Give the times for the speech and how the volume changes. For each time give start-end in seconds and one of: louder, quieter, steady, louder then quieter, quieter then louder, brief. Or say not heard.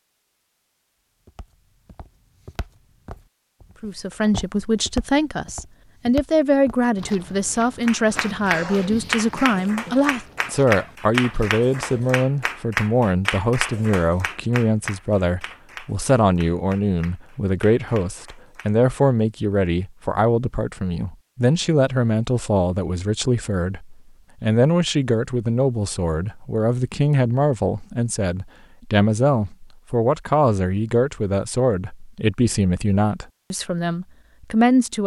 3.8-35.0 steady.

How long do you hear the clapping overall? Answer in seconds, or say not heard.
11 s.